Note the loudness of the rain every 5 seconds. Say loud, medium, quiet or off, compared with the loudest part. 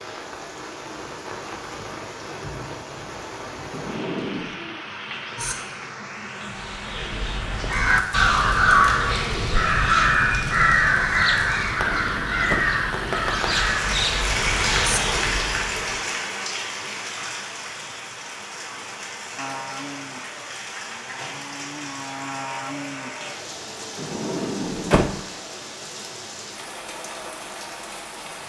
medium, medium, loud, loud, medium, medium.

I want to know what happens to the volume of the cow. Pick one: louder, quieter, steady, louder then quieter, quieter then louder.
quieter then louder.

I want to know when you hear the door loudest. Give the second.
25 s.